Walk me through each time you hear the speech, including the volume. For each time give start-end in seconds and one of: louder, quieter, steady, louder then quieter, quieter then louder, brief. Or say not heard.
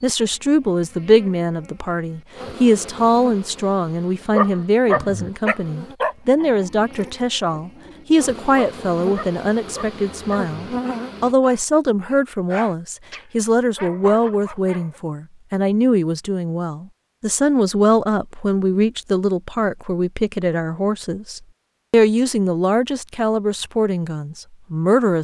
0.0-25.2 steady.